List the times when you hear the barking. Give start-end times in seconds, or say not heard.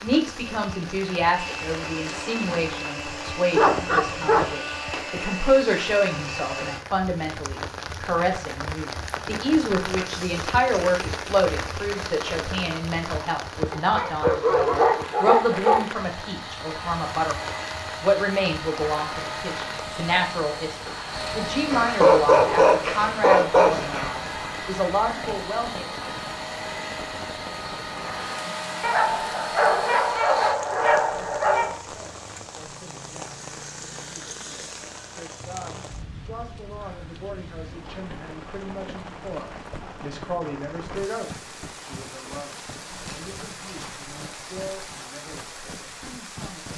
3.5-4.5, 13.7-15.8, 21.7-24.1, 28.8-31.8, 42.9-44.0.